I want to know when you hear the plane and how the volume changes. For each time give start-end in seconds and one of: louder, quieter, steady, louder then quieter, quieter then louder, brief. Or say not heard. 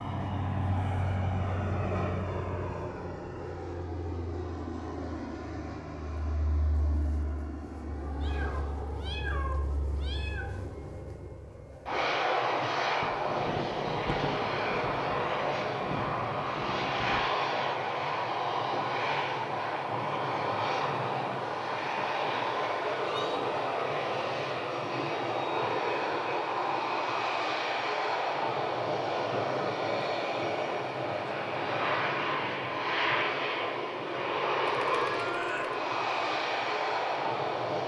0.0-37.8 louder.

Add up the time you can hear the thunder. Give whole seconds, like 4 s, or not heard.
4 s.